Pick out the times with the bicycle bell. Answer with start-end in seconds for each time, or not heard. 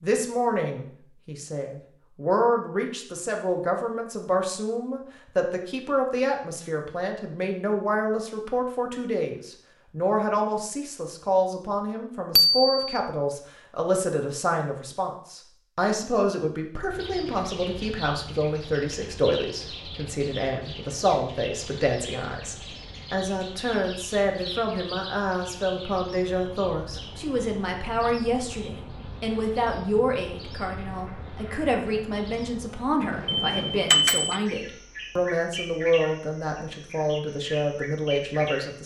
12.3-13.0, 33.2-34.4.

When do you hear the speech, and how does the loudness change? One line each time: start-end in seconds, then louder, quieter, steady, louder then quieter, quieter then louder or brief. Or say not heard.
0.0-38.8 steady.